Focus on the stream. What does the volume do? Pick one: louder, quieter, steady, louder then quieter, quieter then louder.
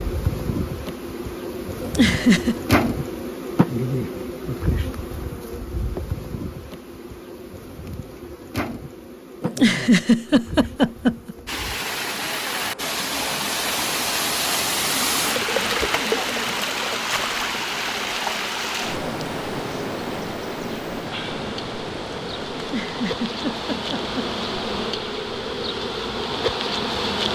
quieter.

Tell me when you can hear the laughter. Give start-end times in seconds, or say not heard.
1.8-2.5, 9.4-11.3, 22.6-24.2.